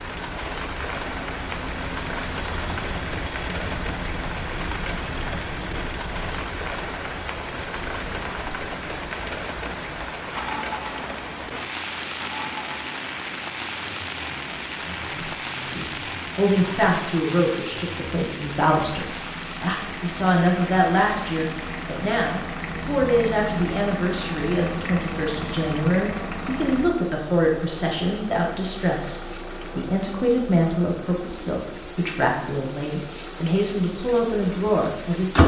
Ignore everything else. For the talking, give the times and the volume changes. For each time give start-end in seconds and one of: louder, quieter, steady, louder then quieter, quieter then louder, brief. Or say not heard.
15.8-35.4 steady.